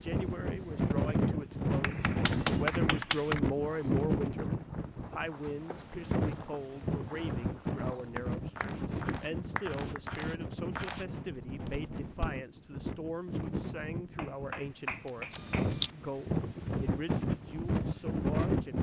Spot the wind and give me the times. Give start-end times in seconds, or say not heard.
0.0-18.7.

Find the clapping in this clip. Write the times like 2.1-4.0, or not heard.
1.8-3.4, 8.2-10.0, 14.2-15.8.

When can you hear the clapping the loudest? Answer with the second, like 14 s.
3 s.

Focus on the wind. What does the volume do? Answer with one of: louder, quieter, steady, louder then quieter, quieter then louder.
quieter then louder.